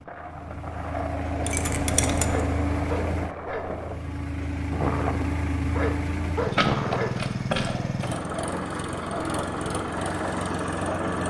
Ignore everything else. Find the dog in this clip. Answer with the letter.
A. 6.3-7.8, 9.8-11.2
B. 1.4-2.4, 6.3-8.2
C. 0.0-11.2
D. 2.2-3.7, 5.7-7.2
D.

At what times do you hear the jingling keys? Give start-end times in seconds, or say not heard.
1.4-2.4, 6.3-8.2.